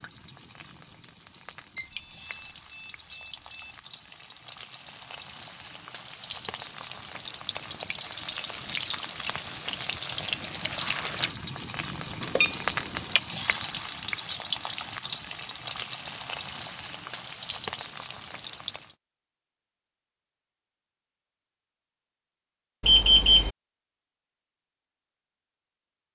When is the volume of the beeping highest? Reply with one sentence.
The loudest moment of the beeping is at 23 seconds.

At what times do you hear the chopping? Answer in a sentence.
The chopping can't be heard in this clip.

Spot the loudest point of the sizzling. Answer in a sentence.
The loudest moment of the sizzling is at 13 seconds.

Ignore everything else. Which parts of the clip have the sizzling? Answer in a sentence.
You can hear the sizzling from 0.0 to 18.9 s.